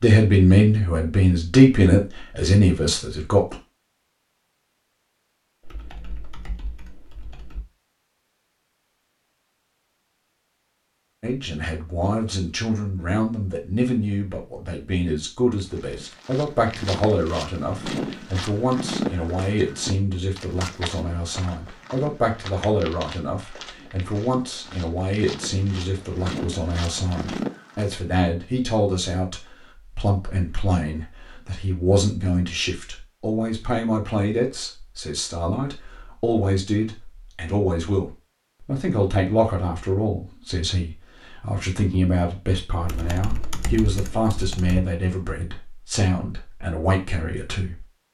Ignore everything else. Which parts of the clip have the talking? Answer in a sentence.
You can hear the talking from 0.0 to 3.5 s and from 11.2 to 47.9 s.